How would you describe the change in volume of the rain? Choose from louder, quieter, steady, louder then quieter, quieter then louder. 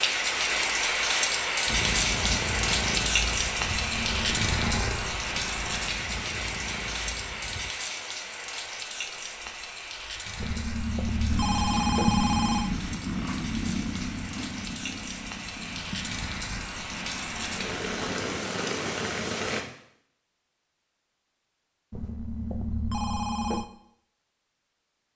quieter then louder.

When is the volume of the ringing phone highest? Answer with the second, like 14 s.
12 s.